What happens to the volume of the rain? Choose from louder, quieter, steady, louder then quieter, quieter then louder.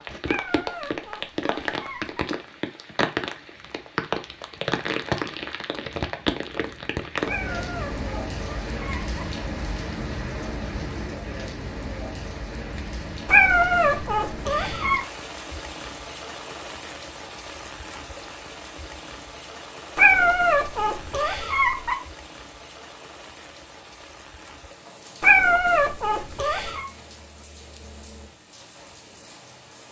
quieter.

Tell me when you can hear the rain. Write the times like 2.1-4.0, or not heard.
0.0-29.8.